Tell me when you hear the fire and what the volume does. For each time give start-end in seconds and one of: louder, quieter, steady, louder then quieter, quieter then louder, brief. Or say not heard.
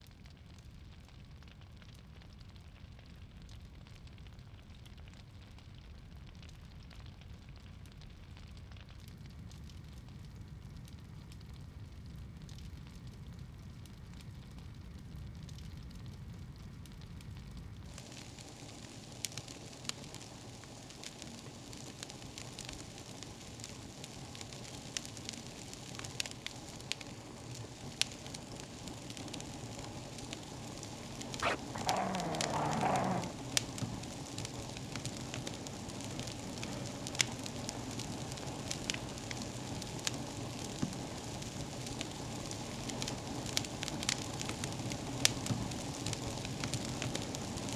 0.0-47.7 louder.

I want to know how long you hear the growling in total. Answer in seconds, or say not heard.
2 s.